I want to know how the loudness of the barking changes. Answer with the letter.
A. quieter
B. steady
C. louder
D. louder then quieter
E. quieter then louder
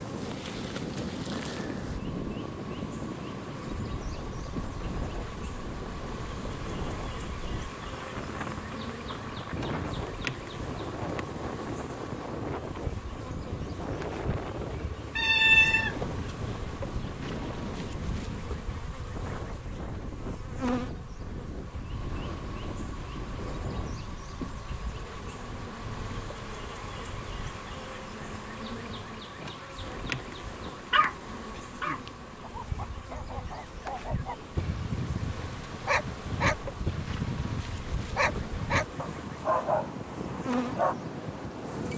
C.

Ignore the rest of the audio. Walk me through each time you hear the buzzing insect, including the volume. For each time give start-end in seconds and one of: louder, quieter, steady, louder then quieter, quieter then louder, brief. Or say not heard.
0.0-41.9 steady.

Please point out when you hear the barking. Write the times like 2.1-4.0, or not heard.
30.9-41.0.